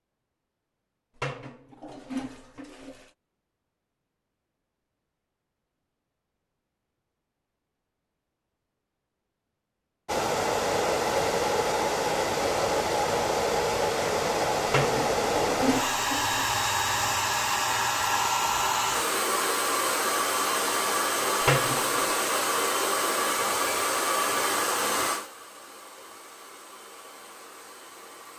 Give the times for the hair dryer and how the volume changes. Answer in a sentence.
The hair dryer can be heard from 10.1 to 28.3 s, getting quieter.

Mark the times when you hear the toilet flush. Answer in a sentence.
You can hear the toilet flush from 1.1 to 3.1 s, from 14.7 to 16.4 s and from 21.4 to 22.1 s.